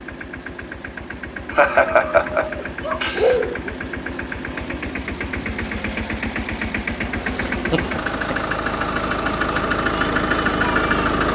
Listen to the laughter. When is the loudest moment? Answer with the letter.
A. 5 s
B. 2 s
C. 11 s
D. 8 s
B.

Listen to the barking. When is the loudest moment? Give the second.
3 s.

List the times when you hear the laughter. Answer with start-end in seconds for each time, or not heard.
1.5-3.4, 7.2-8.6.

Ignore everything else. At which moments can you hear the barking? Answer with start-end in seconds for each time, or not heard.
1.9-3.8.